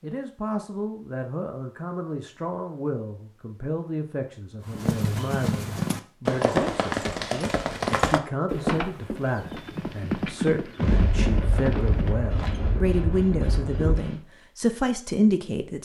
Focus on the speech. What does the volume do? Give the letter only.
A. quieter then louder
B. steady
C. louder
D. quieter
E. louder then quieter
C.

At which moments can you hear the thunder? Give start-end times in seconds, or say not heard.
10.8-14.0.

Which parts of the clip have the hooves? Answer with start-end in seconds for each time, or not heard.
4.6-12.6.